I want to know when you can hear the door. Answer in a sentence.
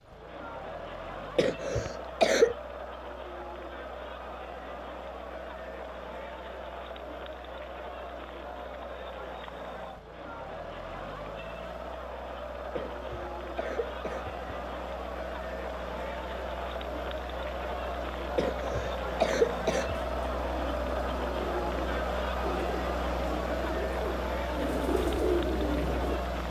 You can't hear the door here.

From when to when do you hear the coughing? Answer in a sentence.
You can hear the coughing from 1.4 to 2.5 s, from 12.8 to 14.3 s and from 18.4 to 19.9 s.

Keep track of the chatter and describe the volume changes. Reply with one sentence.
The volume of the chatter goes up.